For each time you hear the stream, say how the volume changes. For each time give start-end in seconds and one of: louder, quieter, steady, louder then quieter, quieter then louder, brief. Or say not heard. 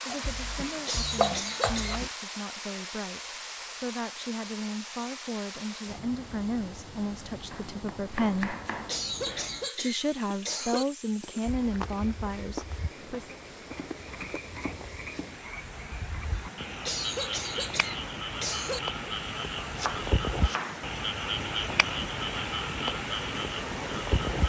0.0-24.4 quieter then louder.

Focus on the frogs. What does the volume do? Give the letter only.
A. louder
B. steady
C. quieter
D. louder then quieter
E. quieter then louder
A.